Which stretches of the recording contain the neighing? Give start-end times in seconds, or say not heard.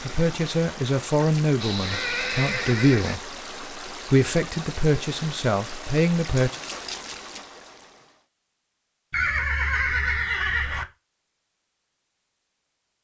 1.6-3.2, 9.1-10.8.